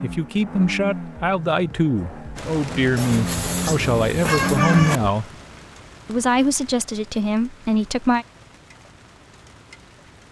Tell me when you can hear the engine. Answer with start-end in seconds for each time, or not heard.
0.0-5.1.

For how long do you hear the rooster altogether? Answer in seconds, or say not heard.
2 s.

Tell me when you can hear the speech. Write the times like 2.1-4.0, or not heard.
0.0-5.2, 6.0-8.2.